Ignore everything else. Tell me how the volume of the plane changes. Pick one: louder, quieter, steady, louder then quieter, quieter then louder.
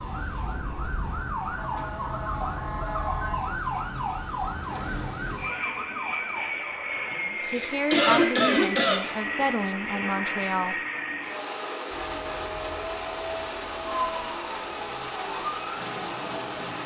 louder.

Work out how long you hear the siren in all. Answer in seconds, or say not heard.
12 s.